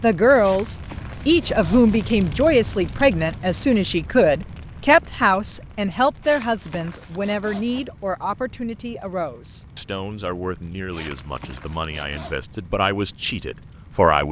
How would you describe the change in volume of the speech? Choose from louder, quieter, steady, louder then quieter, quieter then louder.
quieter.